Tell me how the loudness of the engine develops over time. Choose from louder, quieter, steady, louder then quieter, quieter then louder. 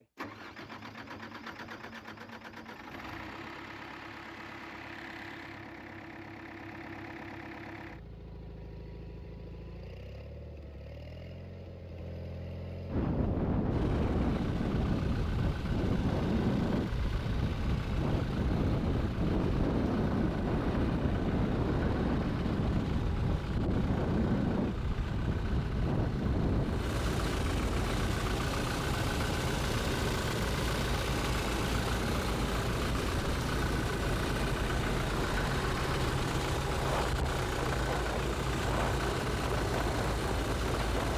louder.